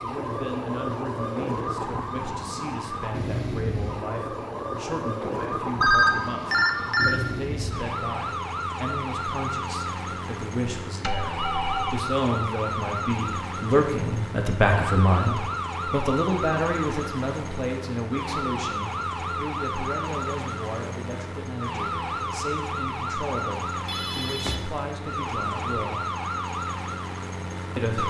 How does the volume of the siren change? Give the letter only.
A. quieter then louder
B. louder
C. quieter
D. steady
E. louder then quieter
D.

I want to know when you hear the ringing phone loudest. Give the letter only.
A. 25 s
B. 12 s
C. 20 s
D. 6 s
D.